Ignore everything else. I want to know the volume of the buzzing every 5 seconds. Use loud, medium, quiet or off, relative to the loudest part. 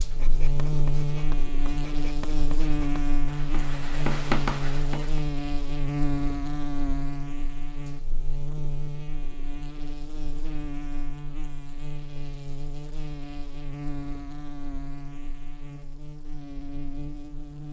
loud, loud, medium, medium.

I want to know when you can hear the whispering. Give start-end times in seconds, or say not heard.
not heard.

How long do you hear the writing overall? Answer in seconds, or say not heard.
5 s.